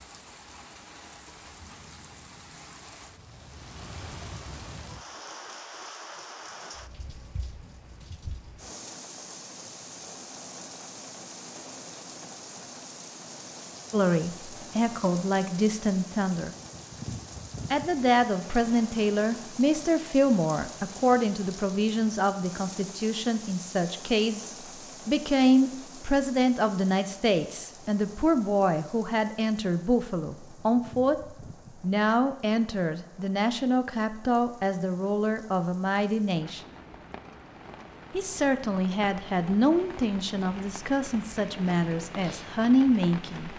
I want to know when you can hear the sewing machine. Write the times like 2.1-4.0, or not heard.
not heard.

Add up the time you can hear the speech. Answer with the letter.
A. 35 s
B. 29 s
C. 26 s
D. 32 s
C.